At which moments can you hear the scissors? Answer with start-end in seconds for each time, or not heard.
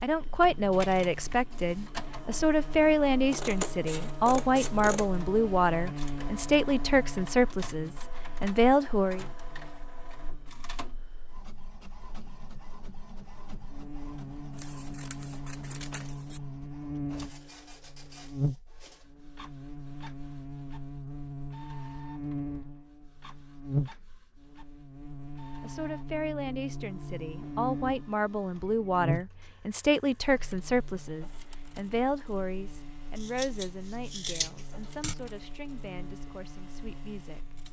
3.3-5.2, 14.6-16.4, 33.1-35.1.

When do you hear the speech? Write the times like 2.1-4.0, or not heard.
0.0-9.2, 25.6-37.5.